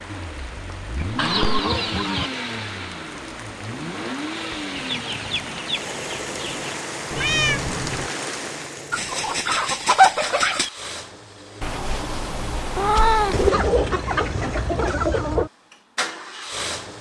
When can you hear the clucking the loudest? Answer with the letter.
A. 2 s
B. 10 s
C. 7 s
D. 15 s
B.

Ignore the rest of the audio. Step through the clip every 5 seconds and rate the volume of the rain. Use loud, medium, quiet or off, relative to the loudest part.
medium, loud, off, off.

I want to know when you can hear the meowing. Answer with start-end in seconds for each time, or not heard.
1.0-1.6, 7.1-8.1, 11.6-13.5.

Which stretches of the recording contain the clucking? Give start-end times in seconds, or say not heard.
1.1-2.3, 4.8-6.8, 8.9-10.7, 13.3-15.5.